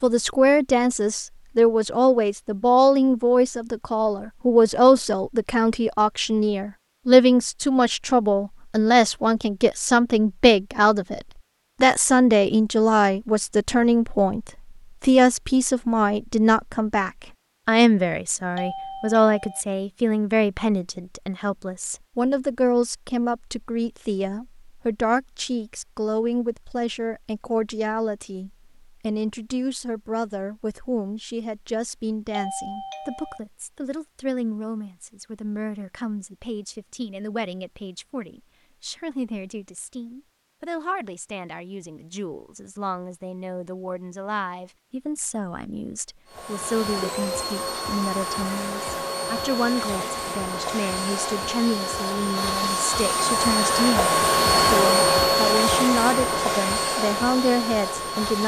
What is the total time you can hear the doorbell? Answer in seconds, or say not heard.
2 s.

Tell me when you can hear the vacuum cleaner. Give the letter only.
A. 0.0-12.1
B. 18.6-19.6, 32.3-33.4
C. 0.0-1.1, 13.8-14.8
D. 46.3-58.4
D.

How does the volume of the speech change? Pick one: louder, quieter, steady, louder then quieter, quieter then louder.
quieter then louder.